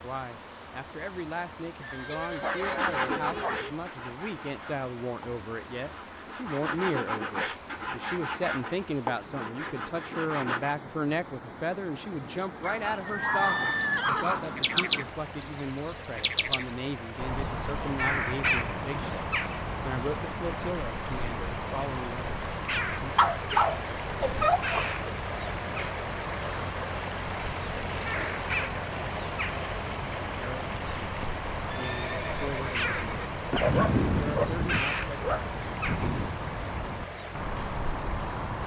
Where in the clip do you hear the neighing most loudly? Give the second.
14 s.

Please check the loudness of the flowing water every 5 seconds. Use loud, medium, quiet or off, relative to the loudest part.
medium, medium, medium, medium, loud, loud, loud, medium.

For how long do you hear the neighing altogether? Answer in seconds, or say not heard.
5 s.